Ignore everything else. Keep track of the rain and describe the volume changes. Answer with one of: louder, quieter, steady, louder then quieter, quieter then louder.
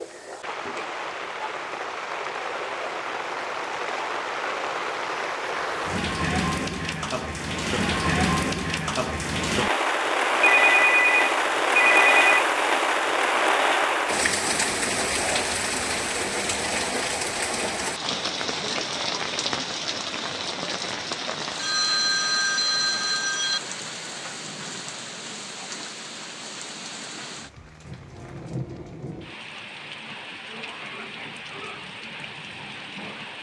louder then quieter.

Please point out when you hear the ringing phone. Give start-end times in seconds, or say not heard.
10.4-12.4, 21.6-23.6.